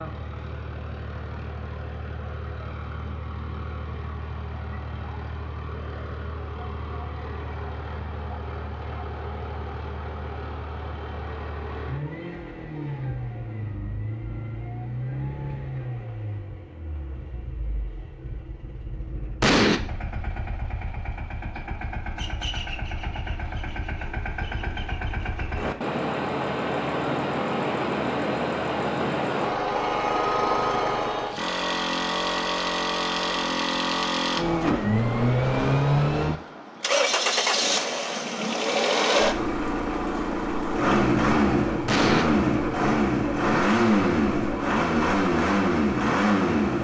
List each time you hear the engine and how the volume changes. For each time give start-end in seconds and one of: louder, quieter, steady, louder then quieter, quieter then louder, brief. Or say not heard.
0.0-46.8 louder.